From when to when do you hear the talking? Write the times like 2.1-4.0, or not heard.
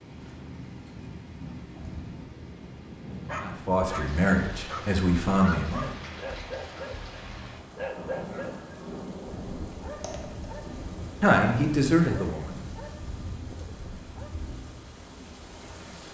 3.4-6.0, 11.2-12.6.